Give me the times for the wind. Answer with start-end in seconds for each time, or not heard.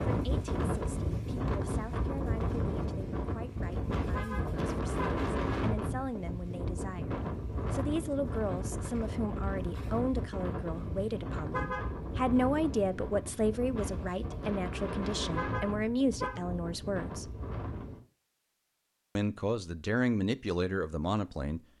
0.0-18.0.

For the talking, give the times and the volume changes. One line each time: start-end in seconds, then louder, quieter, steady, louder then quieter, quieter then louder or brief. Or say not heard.
0.0-17.3 louder
19.1-21.6 brief.